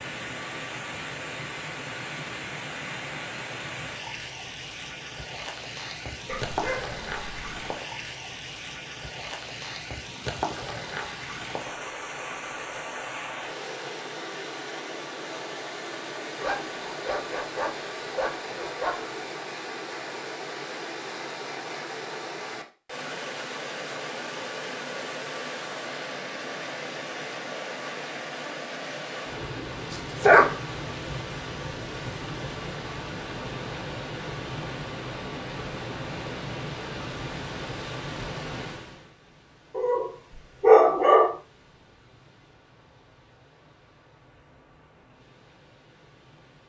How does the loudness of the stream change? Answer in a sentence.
The volume of the stream goes down.